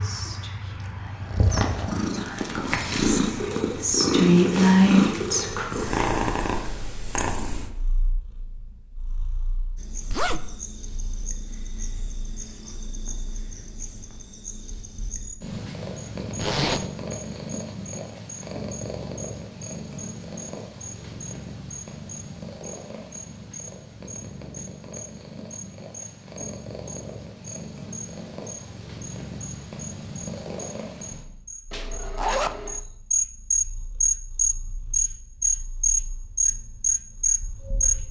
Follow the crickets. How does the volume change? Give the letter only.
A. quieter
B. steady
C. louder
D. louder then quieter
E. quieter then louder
C.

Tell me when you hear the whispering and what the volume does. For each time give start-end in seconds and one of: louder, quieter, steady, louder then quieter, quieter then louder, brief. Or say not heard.
0.0-6.0 louder.